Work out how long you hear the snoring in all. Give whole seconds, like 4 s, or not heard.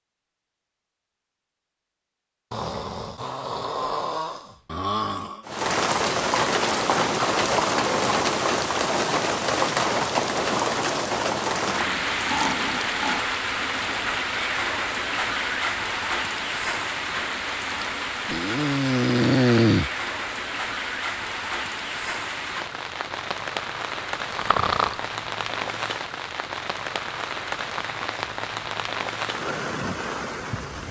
7 s.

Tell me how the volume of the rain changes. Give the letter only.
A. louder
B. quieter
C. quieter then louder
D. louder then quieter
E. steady
B.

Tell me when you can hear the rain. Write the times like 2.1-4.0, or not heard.
5.5-30.8.